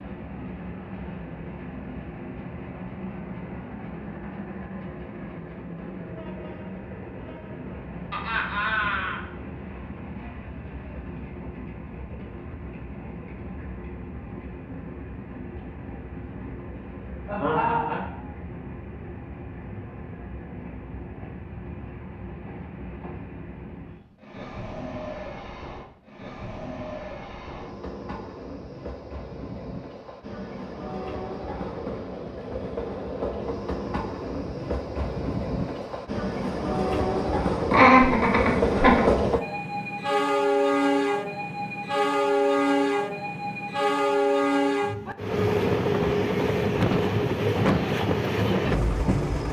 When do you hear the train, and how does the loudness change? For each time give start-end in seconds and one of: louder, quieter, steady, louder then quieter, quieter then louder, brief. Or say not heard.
0.0-49.4 louder.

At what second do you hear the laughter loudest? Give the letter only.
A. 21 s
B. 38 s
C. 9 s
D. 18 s
B.